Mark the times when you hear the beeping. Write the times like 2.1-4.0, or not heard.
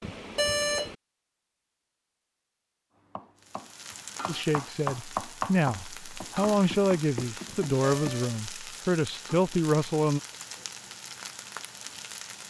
0.0-0.9, 7.5-8.4.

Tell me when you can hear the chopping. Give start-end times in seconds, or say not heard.
3.1-8.2.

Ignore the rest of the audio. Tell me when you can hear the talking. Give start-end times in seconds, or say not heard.
4.2-10.2.